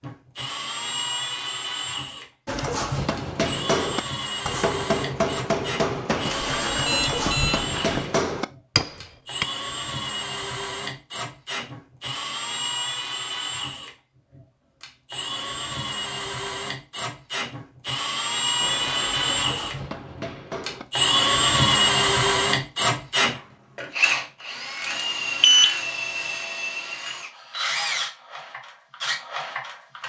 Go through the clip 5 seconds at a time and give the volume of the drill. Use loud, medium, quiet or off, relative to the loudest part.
medium, medium, medium, medium, loud, medium.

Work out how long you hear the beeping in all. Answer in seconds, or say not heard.
3 s.